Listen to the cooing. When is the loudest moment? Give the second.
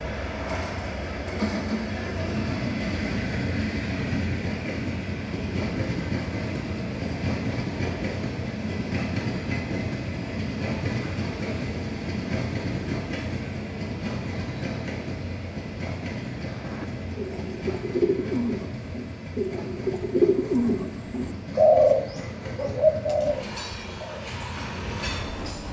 22 s.